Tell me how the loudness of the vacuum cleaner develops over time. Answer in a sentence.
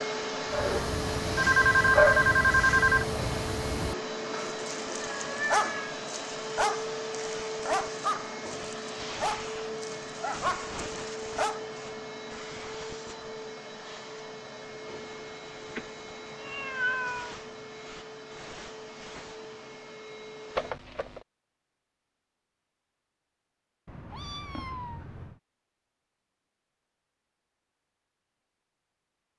The loudness of the vacuum cleaner goes down.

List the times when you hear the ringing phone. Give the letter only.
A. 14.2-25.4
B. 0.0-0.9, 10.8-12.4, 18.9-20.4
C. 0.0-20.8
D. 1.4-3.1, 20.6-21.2
D.